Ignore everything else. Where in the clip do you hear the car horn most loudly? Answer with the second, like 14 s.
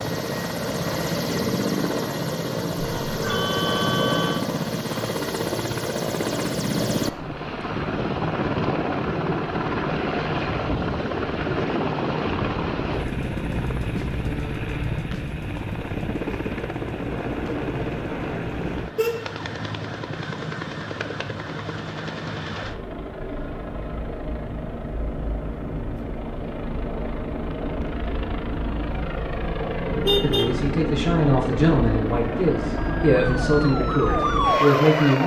30 s.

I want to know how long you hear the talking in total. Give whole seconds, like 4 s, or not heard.
5 s.